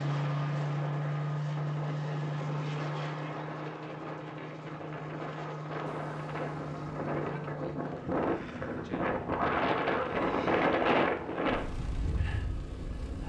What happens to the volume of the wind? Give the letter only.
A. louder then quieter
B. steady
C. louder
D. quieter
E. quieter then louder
C.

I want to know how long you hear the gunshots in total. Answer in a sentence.
The gunshots can be heard for 2 seconds in total.